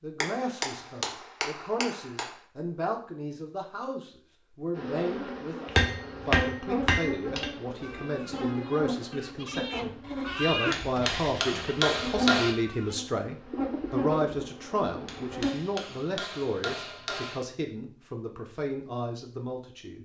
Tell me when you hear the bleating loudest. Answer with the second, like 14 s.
11 s.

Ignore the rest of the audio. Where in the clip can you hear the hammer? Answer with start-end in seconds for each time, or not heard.
0.2-2.3, 5.8-7.5, 10.7-12.6, 15.1-17.5.